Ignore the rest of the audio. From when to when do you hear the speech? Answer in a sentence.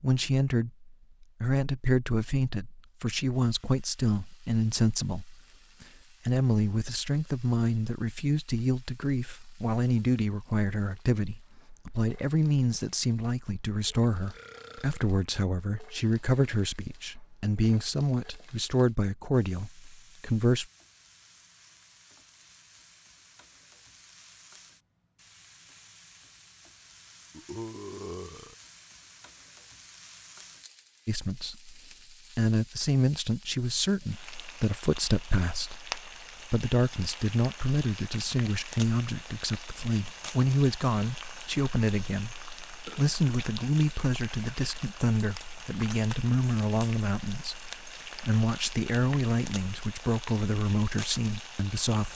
You can hear the speech from 0.0 to 20.6 s, from 31.1 to 31.8 s and from 32.4 to 52.1 s.